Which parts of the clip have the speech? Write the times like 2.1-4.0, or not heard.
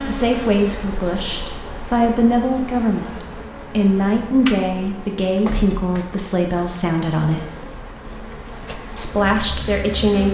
0.1-7.5, 8.9-10.2.